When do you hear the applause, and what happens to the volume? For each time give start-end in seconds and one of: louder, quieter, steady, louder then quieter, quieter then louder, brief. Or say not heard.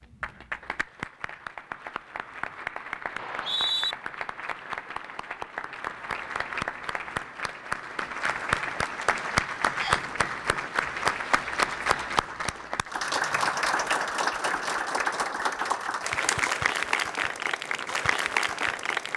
0.0-19.1 louder.